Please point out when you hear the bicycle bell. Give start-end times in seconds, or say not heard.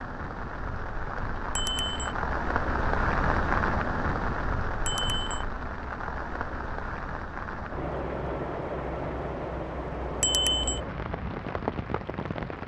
1.6-2.1, 4.8-5.4, 10.2-10.8.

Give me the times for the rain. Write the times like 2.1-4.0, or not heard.
0.0-12.6.